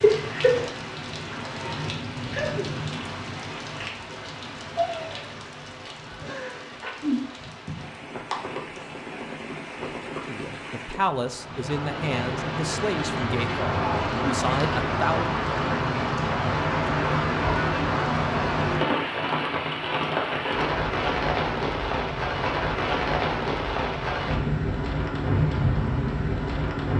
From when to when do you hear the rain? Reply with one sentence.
The rain can be heard from 0.0 to 26.9 s.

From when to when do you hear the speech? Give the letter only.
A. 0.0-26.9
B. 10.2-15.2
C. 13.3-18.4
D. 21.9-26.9
B.